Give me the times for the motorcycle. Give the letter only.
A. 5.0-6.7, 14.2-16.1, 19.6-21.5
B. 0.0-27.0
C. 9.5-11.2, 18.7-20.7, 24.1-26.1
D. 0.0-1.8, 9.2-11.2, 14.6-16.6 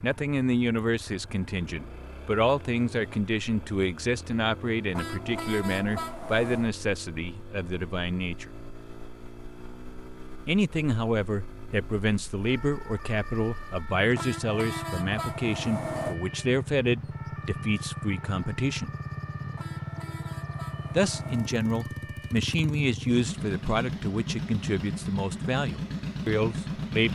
B.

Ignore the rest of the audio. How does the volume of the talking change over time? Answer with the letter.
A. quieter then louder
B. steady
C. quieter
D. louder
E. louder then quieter
B.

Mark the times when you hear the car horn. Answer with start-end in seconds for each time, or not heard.
5.0-6.7, 14.2-16.1, 19.6-21.5.